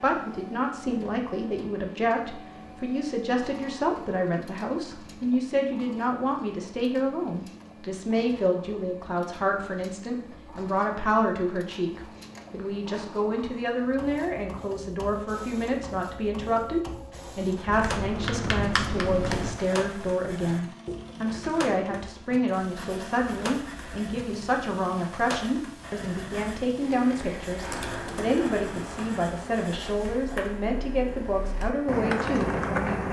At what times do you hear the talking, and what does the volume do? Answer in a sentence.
The talking can be heard from 0.0 to 32.8 s, at a steady volume.